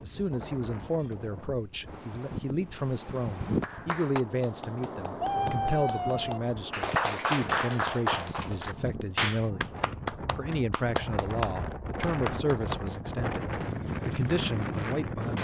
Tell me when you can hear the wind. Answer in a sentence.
You can hear the wind from 0.0 to 15.3 s.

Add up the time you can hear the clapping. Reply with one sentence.
You can hear the clapping for 10 seconds altogether.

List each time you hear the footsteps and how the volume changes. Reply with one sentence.
You can't hear the footsteps here.